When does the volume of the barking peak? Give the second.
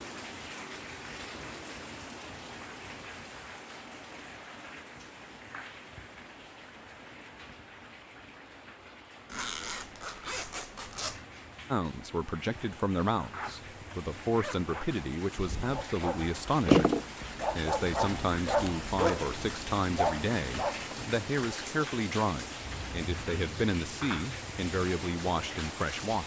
17 s.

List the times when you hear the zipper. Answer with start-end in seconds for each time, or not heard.
9.3-11.2, 13.2-14.8.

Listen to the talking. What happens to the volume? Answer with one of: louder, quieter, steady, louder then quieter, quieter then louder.
steady.